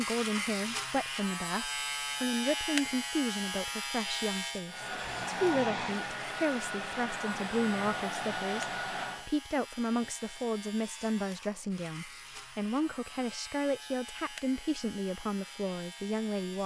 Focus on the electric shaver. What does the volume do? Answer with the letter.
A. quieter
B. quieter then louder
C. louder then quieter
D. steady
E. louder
A.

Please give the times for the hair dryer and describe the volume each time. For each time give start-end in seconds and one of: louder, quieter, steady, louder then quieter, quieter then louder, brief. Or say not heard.
4.7-9.3 steady.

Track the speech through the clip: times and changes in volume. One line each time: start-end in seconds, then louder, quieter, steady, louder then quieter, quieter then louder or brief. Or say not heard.
0.0-16.6 steady.